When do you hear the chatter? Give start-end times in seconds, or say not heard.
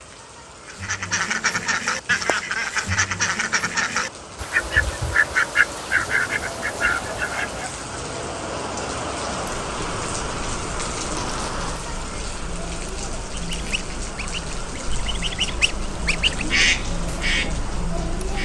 4.5-18.4.